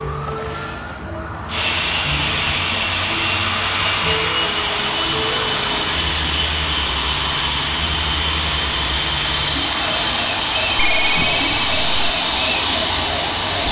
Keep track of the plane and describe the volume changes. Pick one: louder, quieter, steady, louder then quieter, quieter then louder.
steady.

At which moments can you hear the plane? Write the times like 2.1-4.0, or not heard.
1.4-13.6.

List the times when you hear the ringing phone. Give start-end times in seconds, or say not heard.
10.8-12.1.